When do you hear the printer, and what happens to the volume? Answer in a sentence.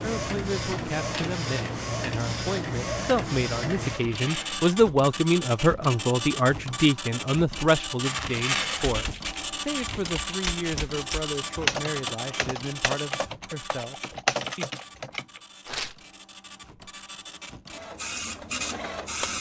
You can hear the printer from 0.0 to 19.3 s, getting quieter.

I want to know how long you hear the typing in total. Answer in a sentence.
The typing can be heard for 7 seconds in total.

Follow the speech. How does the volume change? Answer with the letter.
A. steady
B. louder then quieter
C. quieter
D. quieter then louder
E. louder
B.